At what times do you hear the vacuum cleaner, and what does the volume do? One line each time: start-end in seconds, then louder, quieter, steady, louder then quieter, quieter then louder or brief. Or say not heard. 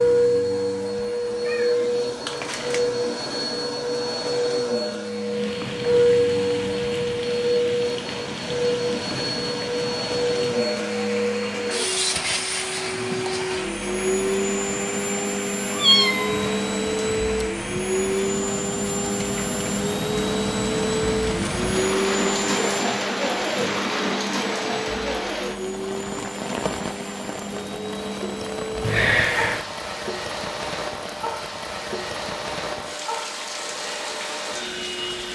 0.0-35.3 quieter.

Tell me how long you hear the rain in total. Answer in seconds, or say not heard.
30 s.